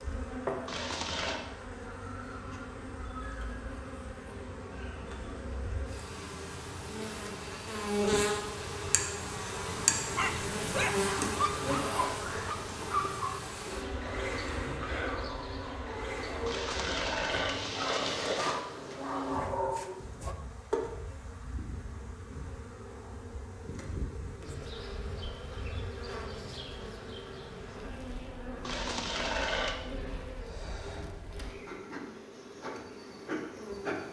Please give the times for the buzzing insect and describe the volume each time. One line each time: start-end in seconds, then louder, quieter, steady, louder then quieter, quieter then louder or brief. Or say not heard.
0.0-34.0 louder then quieter.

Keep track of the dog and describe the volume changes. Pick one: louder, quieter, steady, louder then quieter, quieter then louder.
quieter then louder.